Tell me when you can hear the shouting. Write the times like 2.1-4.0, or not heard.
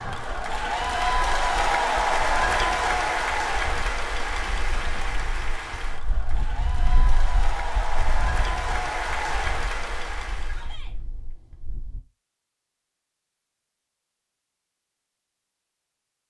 10.4-10.9.